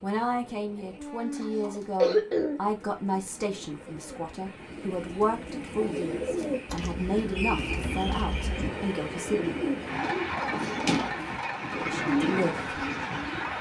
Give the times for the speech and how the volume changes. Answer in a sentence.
You can hear the speech from 0.0 to 9.6 s, at a steady volume; and briefly from 11.8 to 12.7 s.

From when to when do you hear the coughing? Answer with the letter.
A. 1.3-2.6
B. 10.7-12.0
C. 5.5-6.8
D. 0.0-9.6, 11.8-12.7
A.